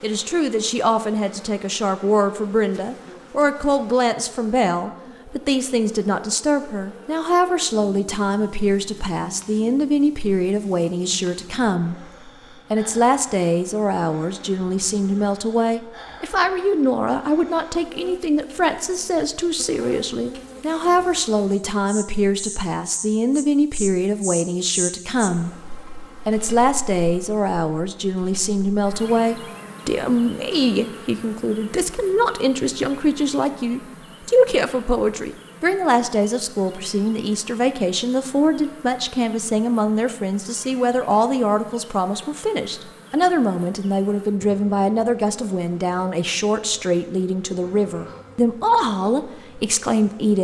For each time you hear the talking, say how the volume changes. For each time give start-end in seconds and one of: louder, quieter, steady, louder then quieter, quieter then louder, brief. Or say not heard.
0.0-50.3 steady.